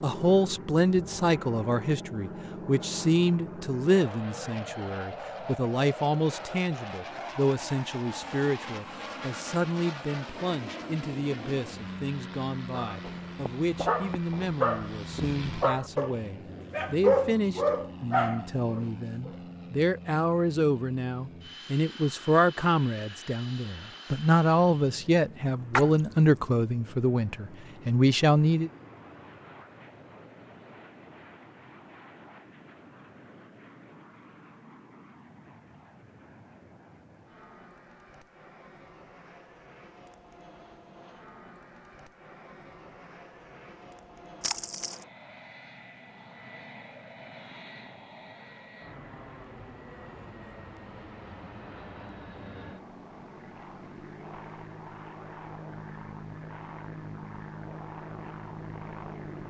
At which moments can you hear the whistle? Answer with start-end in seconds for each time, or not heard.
not heard.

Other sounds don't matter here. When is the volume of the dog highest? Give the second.
17 s.